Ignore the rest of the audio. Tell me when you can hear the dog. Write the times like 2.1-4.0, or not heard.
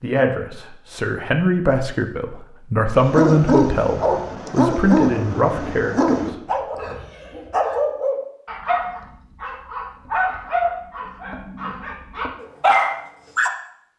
2.9-13.5.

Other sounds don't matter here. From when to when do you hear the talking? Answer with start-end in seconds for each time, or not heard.
0.0-7.0.